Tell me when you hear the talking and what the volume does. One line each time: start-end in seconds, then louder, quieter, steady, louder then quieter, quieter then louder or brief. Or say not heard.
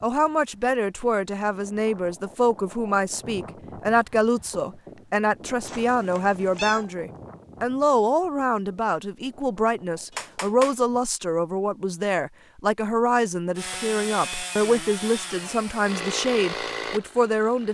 0.0-17.6 steady.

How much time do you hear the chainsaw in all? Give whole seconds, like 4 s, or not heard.
4 s.